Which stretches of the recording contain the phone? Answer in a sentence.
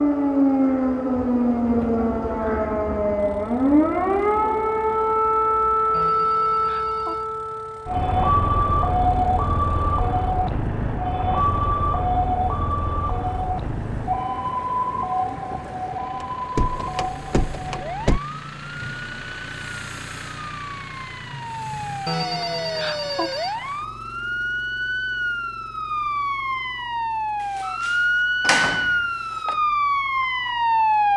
The phone can be heard from 5.9 to 7.2 s and from 22.1 to 23.6 s.